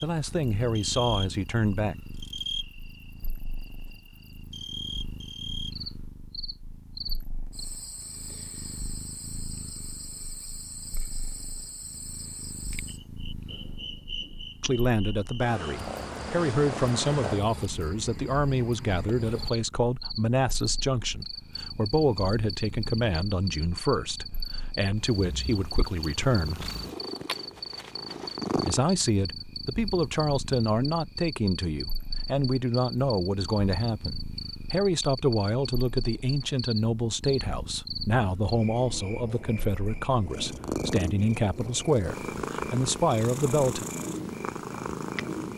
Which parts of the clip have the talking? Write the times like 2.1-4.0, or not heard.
0.0-1.9, 14.6-26.7, 28.6-43.9.